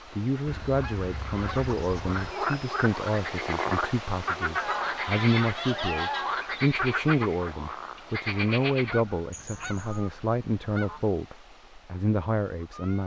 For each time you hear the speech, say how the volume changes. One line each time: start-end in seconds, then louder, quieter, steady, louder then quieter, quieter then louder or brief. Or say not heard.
0.1-13.0 steady.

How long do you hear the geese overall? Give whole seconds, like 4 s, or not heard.
6 s.